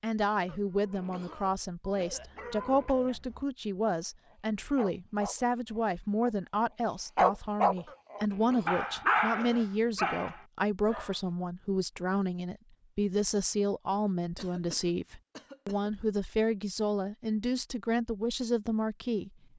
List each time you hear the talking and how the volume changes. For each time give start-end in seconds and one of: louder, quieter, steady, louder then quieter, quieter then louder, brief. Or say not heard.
0.0-19.3 steady.